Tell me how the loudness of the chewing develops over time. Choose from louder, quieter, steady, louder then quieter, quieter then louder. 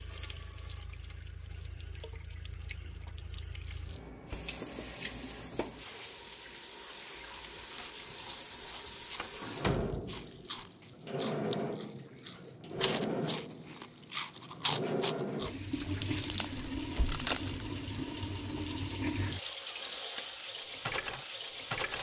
louder.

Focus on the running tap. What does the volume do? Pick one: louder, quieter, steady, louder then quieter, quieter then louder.
louder.